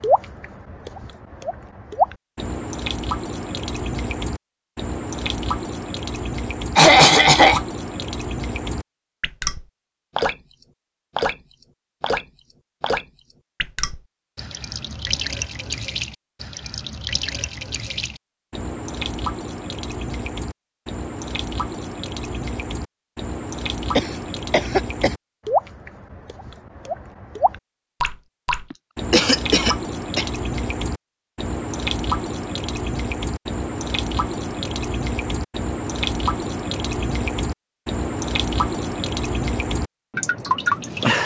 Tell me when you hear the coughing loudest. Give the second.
7 s.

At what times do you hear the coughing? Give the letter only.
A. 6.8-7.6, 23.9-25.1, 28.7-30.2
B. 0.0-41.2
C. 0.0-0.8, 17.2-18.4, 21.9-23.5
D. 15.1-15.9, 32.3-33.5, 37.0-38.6
A.